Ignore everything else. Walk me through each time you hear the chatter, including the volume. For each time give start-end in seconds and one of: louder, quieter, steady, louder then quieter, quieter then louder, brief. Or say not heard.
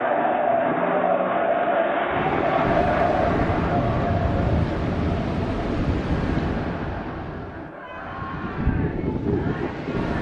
0.0-10.1 quieter.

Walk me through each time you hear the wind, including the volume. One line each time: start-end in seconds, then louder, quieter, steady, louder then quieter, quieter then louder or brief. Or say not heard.
2.0-10.1 quieter then louder.